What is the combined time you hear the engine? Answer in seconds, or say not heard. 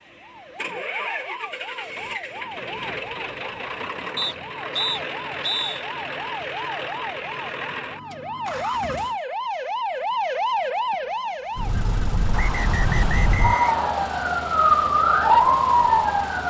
14 s.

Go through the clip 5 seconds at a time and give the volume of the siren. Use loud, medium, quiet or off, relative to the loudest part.
quiet, quiet, medium, loud.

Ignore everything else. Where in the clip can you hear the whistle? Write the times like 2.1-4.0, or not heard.
4.2-5.8, 12.3-13.8.